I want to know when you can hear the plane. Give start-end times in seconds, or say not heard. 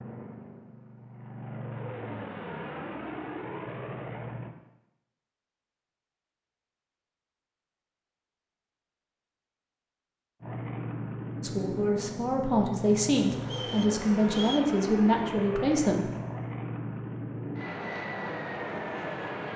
0.0-4.5, 10.4-19.5.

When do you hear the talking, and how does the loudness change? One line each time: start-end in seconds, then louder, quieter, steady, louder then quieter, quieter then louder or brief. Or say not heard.
11.4-16.1 steady.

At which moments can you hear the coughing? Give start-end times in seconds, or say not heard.
not heard.